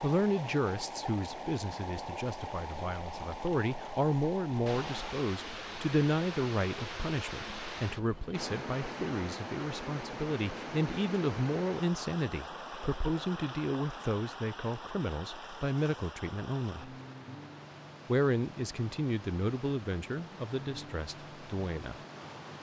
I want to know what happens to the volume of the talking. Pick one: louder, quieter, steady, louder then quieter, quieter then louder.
steady.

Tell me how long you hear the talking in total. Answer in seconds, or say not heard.
21 s.